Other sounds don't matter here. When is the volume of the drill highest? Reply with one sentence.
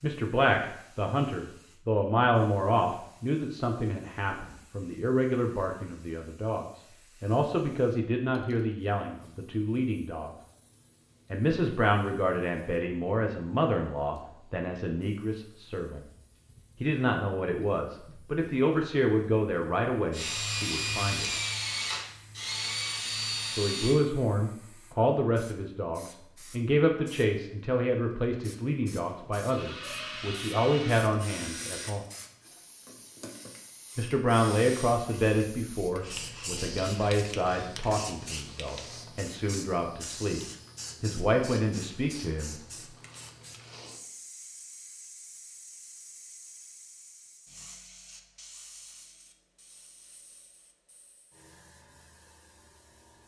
The loudest moment of the drill is at 21 seconds.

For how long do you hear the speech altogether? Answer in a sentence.
You can hear the speech for 36 seconds altogether.